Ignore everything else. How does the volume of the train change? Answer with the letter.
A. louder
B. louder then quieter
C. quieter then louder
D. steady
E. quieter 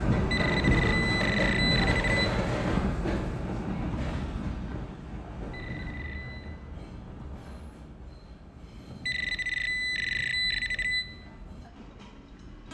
E.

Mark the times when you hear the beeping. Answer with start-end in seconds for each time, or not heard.
0.3-2.3, 5.5-6.5, 9.1-11.1.